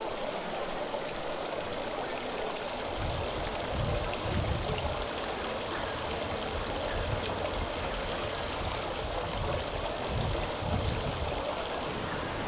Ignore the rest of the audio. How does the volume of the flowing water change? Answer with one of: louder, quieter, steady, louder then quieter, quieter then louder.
steady.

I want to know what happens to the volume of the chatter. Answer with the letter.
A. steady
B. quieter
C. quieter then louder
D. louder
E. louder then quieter
A.